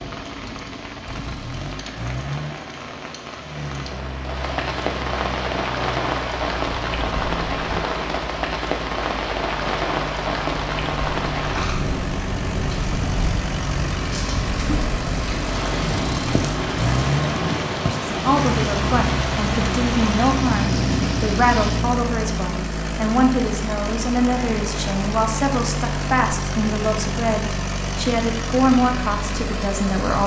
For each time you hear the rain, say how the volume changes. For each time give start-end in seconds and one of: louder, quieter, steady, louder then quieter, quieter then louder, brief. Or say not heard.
0.0-21.8 louder.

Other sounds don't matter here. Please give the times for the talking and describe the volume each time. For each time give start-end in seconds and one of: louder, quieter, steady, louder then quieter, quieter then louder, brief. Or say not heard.
18.1-30.2 steady.